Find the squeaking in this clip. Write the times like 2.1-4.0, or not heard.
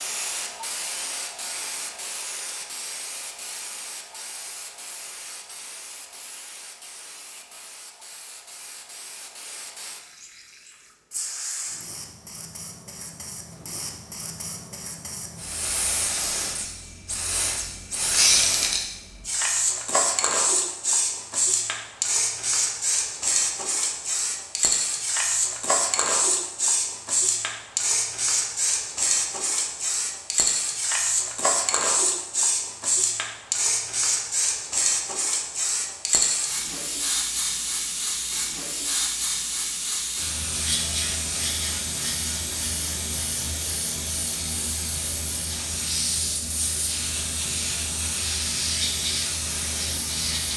18.1-18.8.